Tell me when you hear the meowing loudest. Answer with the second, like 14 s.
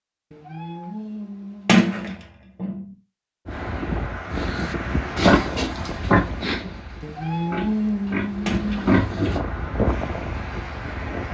8 s.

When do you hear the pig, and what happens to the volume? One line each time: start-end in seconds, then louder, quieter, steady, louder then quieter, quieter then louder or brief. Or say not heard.
4.3-9.4 quieter then louder.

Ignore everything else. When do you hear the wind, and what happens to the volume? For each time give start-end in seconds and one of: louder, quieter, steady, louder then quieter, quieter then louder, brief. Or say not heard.
3.5-11.2 quieter then louder.